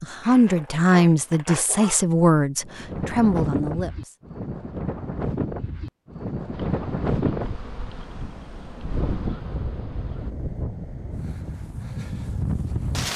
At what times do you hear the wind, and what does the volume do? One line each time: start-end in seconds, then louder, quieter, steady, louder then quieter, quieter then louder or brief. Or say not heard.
2.6-13.1 steady.